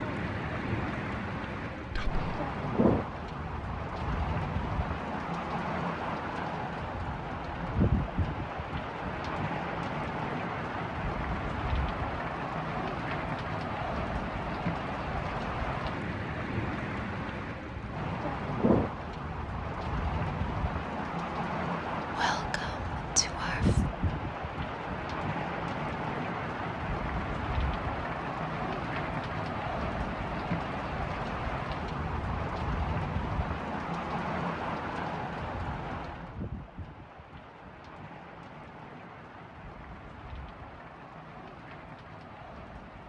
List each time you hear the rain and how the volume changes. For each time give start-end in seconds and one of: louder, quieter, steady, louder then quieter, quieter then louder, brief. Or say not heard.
0.0-43.0 quieter.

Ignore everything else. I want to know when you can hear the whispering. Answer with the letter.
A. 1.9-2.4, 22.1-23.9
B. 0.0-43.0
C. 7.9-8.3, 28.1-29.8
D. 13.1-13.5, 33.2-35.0
A.